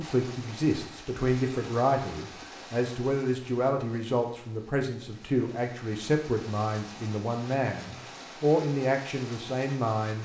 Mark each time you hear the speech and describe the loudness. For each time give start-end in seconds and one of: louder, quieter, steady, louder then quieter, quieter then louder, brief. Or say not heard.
0.0-10.2 steady.